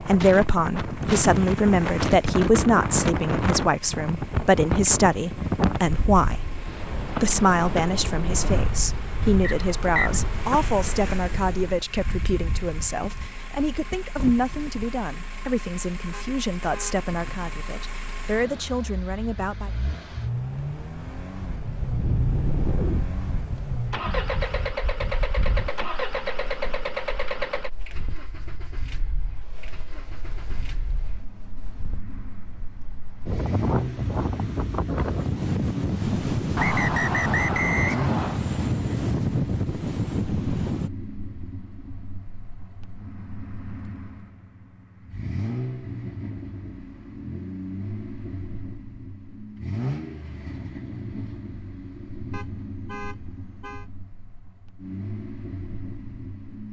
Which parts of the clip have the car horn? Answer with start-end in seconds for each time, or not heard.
16.1-16.9, 52.3-53.9.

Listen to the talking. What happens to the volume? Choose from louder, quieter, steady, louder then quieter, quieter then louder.
quieter.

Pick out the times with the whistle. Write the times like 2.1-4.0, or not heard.
9.4-10.2, 36.5-38.4.